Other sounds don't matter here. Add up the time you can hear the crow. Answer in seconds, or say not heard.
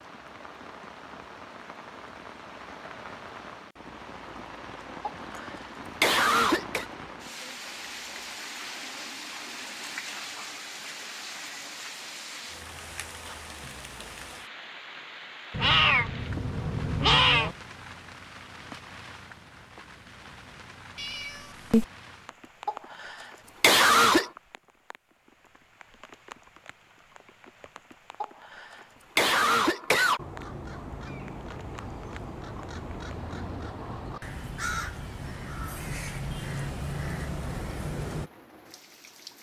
8 s.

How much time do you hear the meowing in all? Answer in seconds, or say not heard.
3 s.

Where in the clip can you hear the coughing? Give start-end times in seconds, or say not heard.
5.0-6.8, 22.6-24.3, 28.2-30.2.